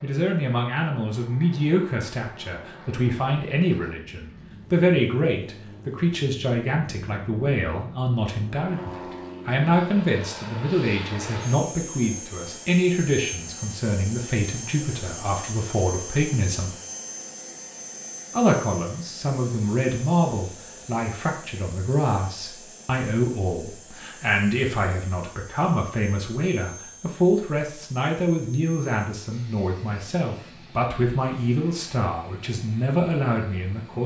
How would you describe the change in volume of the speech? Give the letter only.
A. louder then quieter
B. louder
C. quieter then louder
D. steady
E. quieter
D.